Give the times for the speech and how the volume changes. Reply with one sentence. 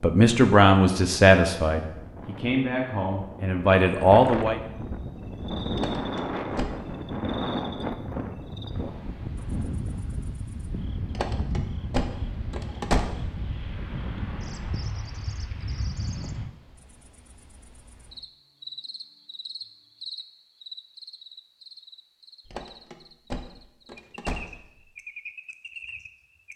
You can hear the speech from 0.0 to 4.6 s, getting quieter then louder.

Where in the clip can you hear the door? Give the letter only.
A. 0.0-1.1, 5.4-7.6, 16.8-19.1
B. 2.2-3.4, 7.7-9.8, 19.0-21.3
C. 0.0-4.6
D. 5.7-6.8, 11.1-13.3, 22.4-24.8
D.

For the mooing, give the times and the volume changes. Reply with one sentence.
The mooing can't be heard in this clip.